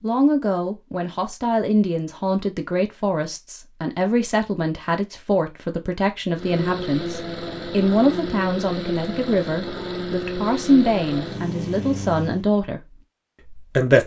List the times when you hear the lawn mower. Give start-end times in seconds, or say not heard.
6.3-12.5.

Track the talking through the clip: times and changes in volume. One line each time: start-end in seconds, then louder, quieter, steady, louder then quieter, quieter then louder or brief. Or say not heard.
0.0-14.0 steady.